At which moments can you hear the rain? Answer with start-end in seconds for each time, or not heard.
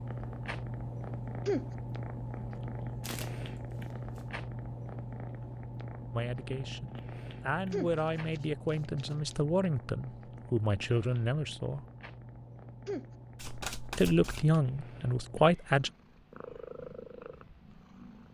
not heard.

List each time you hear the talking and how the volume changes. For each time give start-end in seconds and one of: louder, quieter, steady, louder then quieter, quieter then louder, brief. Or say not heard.
6.1-11.8 louder
13.9-15.9 brief.